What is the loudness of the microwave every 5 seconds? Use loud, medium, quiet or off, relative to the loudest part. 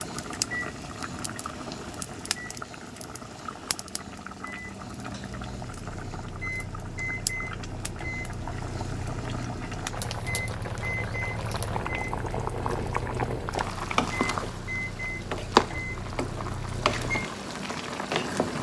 medium, loud, loud, loud.